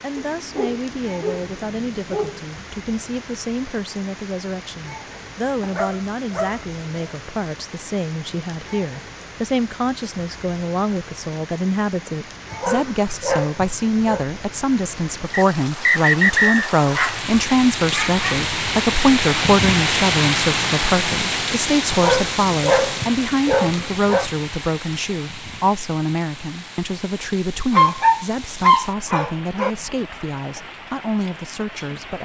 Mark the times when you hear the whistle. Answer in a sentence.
The whistle can be heard from 15.3 to 16.7 s.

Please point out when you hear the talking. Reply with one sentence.
The talking can be heard from 0.0 to 32.1 s.